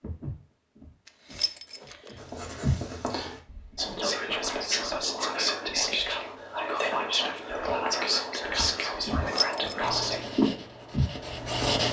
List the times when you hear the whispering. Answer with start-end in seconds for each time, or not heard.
3.8-10.2.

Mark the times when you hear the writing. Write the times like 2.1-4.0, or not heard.
2.1-4.0, 9.8-11.8.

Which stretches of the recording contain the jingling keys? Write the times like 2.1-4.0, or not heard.
1.1-2.2, 9.2-9.9.